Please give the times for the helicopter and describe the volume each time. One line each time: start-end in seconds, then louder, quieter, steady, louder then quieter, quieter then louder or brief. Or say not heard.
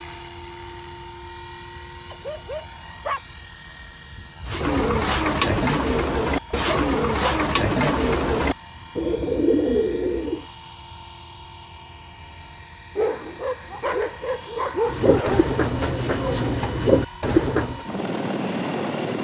0.0-19.1 steady.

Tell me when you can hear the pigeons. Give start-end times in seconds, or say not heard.
4.5-10.4, 14.8-17.9.